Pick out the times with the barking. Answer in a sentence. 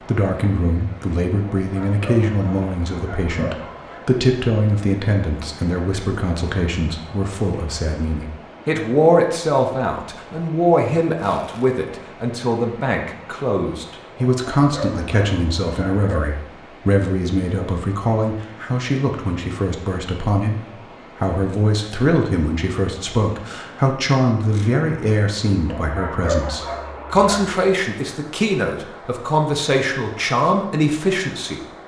The barking can be heard from 1.6 to 4.0 s, from 14.4 to 16.2 s and from 25.6 to 27.6 s.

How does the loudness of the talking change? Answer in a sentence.
The volume of the talking stays about the same.